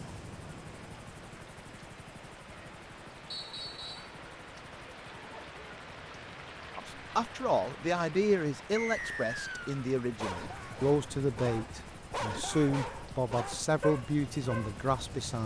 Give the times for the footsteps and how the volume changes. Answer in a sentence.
The footsteps can't be heard in this clip.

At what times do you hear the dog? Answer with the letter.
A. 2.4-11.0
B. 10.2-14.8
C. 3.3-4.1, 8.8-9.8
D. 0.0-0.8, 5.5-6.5
B.